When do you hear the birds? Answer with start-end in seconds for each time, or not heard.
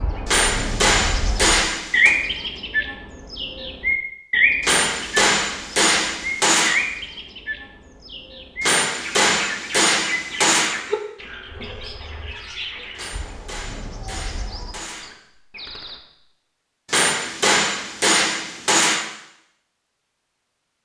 0.0-16.0.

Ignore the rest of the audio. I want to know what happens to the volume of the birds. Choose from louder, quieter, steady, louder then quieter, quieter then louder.
quieter.